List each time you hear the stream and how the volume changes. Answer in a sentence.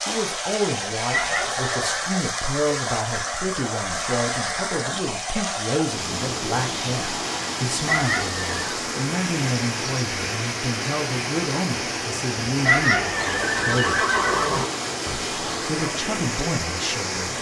The stream can be heard from 0.0 to 17.3 s, at a steady volume.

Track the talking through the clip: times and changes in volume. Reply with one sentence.
The talking can be heard from 0.1 to 14.0 s, at a steady volume; and briefly from 15.1 to 17.3 s.